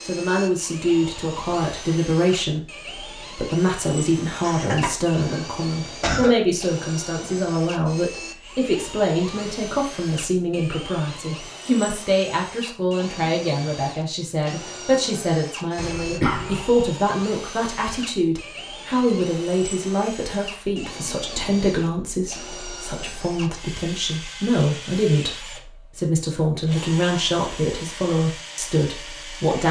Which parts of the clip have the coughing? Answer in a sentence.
You can hear the coughing from 4.4 to 6.3 s and from 15.8 to 16.6 s.